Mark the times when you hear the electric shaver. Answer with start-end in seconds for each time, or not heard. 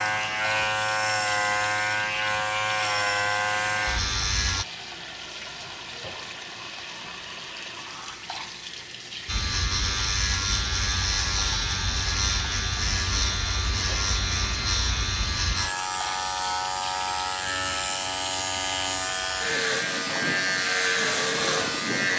0.0-4.7, 9.2-22.1.